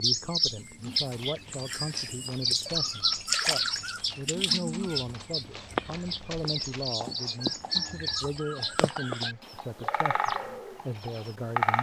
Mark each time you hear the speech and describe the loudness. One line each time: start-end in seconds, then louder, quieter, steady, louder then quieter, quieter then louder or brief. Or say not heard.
0.0-11.7 steady.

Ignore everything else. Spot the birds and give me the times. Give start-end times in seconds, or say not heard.
0.0-11.7.